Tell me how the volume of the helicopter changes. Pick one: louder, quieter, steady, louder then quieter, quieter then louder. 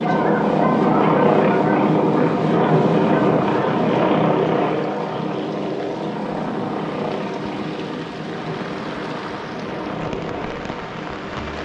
quieter.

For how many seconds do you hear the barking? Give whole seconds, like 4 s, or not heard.
4 s.